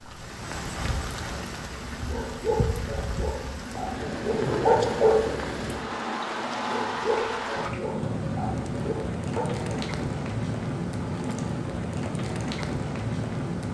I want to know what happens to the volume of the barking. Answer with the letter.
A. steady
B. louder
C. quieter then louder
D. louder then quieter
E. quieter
D.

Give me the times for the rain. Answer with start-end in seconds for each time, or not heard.
0.0-13.6.